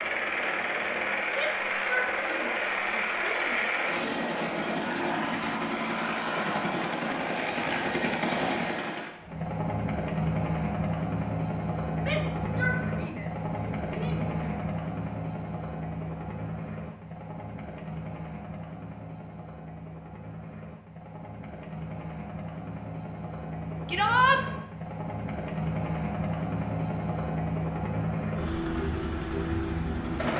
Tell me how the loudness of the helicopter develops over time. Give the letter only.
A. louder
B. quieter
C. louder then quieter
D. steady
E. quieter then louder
E.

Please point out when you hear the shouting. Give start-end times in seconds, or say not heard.
1.3-3.6, 12.0-14.4, 23.9-24.4.